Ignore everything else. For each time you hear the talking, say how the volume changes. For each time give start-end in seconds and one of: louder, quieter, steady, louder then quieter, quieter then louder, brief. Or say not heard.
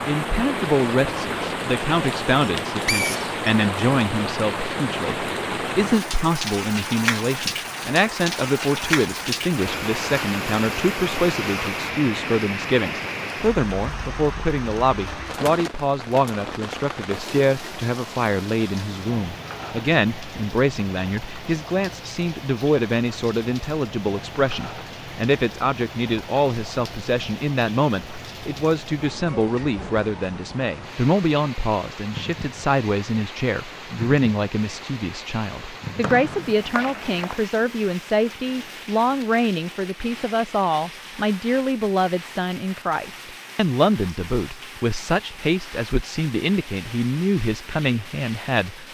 0.1-48.8 steady.